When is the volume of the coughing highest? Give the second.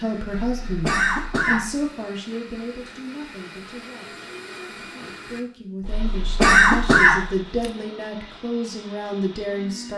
7 s.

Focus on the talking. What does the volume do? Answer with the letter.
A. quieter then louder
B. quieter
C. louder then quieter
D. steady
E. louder
A.